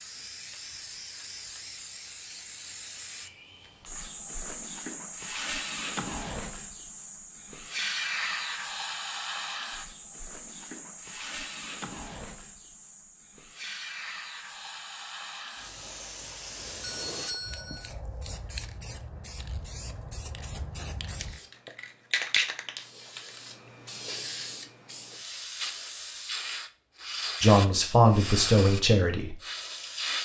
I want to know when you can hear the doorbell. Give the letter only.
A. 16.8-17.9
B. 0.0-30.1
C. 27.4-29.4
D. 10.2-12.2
A.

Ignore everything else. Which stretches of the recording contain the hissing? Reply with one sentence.
You can hear the hissing from 0.0 to 30.1 s.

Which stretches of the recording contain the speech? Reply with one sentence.
You can hear the speech from 27.4 to 29.4 s.